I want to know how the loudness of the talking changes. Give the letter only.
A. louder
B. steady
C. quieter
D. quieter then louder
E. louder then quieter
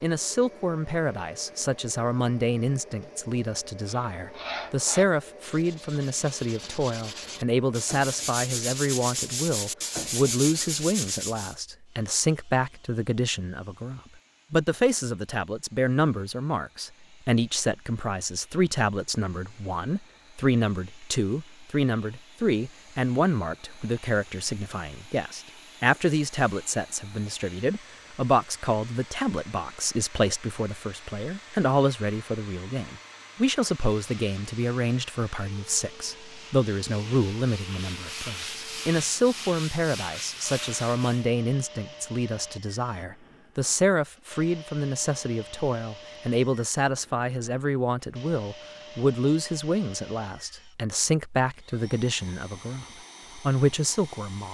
B.